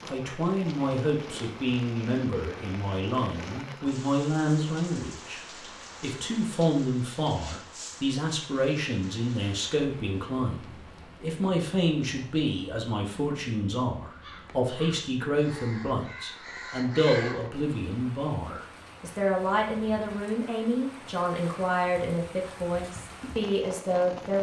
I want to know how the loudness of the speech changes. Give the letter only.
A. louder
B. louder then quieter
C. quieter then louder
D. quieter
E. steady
E.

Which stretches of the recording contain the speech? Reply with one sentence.
The speech can be heard from 0.0 to 5.4 s and from 6.0 to 24.3 s.